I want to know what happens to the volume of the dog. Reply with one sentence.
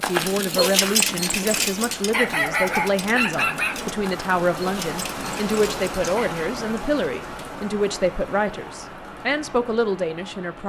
The loudness of the dog goes down.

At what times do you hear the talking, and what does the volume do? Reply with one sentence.
You can hear the talking from 0.0 to 10.6 s, at a steady volume.